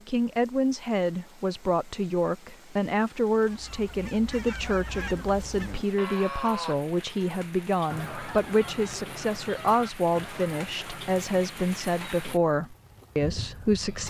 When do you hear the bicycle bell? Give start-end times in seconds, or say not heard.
not heard.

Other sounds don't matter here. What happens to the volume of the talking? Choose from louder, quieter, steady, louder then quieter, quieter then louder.
steady.